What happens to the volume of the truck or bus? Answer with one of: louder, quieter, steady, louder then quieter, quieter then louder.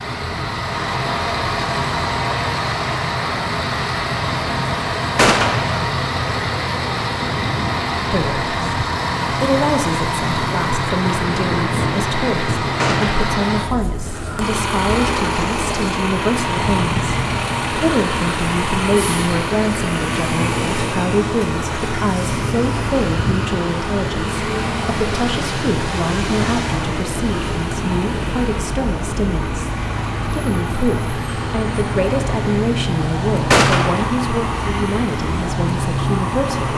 steady.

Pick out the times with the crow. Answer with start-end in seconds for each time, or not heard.
not heard.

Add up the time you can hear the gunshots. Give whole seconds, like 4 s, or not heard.
2 s.